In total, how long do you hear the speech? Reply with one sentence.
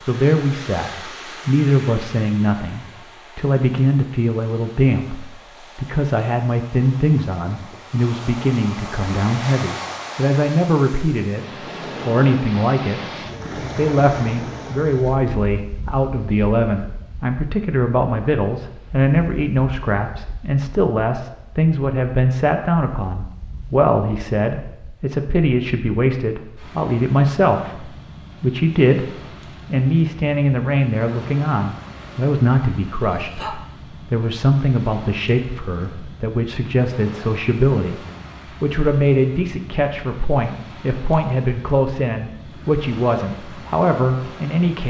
The speech can be heard for 43 seconds in total.